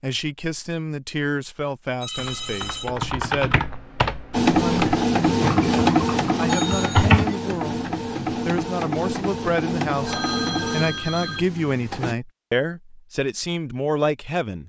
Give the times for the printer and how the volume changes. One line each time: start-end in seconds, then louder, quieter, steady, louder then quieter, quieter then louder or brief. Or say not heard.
4.3-12.2 quieter.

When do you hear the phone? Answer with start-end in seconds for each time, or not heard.
2.0-2.9, 6.5-7.1, 10.0-11.4.